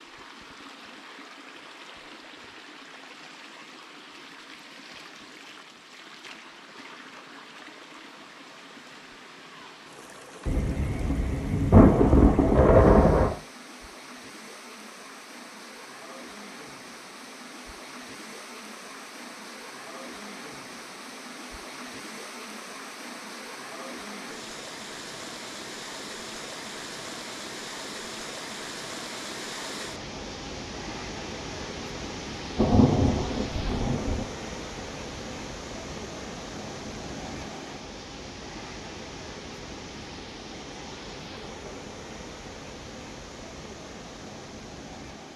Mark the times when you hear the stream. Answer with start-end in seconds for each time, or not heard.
0.0-45.3.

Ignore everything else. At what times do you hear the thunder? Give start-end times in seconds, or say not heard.
10.4-13.3, 32.5-34.2.